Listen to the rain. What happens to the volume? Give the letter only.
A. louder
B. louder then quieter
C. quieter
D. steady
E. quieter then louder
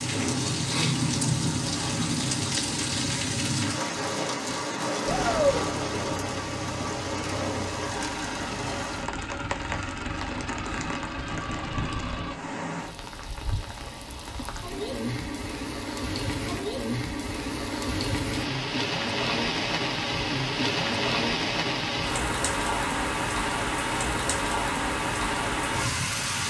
E.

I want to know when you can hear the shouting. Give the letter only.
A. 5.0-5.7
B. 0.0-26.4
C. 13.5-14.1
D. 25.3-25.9
A.